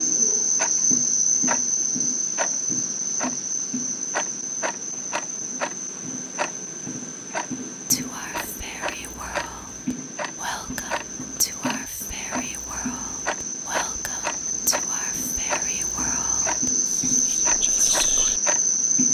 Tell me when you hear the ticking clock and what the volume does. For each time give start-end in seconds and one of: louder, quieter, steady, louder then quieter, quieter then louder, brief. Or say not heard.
0.0-19.0 steady.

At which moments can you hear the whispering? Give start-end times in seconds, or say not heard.
7.9-18.4.